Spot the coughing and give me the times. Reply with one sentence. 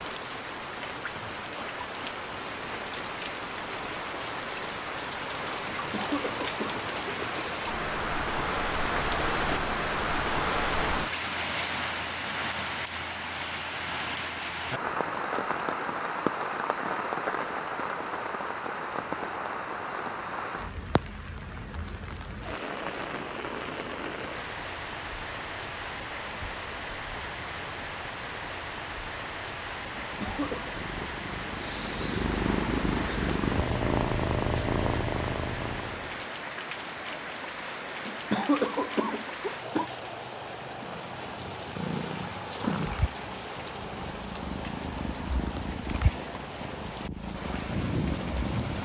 The coughing can be heard from 5.8 to 7.5 s, from 29.9 to 30.7 s and from 38.0 to 39.9 s.